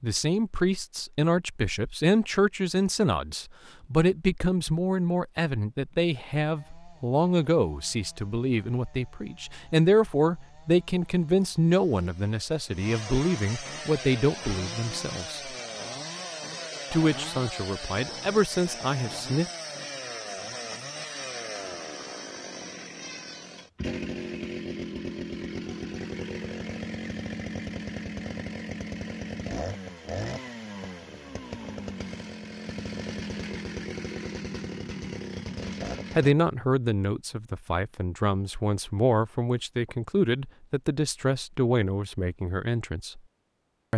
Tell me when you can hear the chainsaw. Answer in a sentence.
The chainsaw can be heard from 6.5 to 36.4 s.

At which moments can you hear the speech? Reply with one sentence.
You can hear the speech from 0.0 to 15.6 s, from 16.9 to 19.5 s and from 36.1 to 43.2 s.